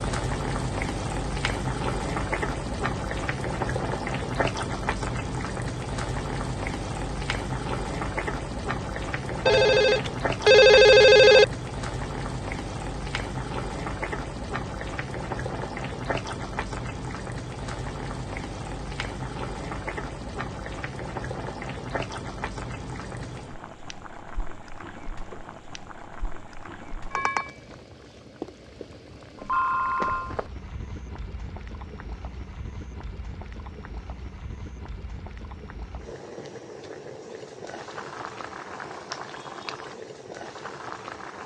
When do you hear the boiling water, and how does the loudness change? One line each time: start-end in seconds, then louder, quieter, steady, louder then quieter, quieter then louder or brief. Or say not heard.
0.0-41.4 quieter.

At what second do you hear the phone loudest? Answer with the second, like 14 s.
11 s.